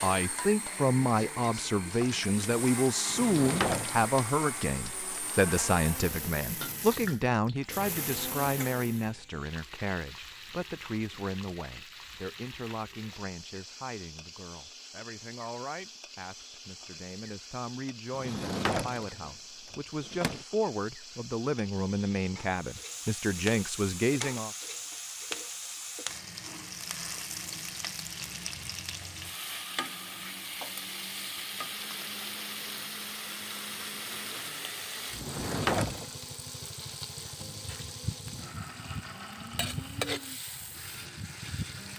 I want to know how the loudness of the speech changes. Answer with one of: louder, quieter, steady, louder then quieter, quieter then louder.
quieter then louder.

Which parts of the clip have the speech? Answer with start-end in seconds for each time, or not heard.
0.0-24.5.